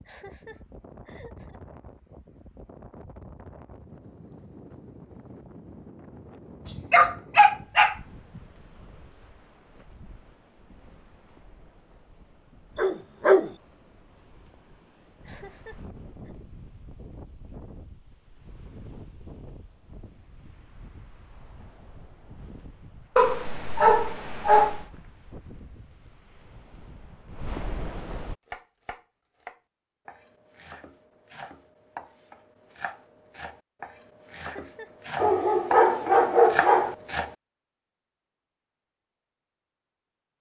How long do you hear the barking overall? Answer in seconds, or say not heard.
6 s.